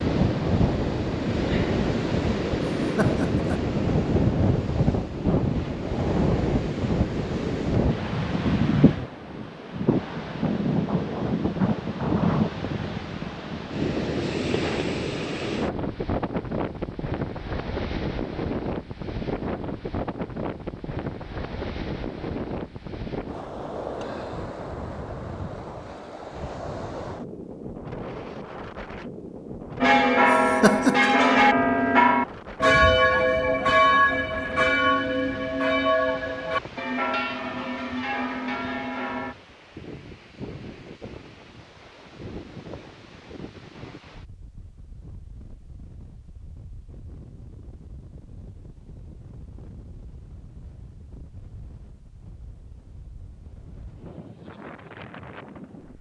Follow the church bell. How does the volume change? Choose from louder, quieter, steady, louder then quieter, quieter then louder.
quieter.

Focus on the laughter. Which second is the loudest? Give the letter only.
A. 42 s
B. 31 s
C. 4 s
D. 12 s
B.